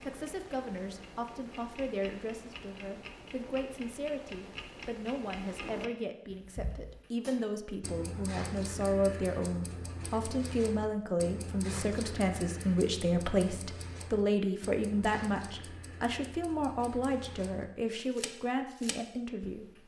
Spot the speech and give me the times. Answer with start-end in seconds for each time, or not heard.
0.0-19.8.